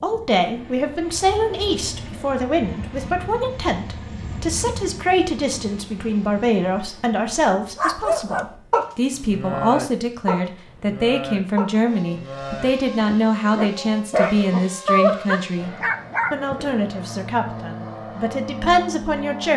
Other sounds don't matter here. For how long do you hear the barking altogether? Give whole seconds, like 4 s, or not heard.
9 s.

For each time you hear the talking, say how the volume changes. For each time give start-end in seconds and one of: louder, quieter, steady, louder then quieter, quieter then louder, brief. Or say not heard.
0.0-19.5 steady.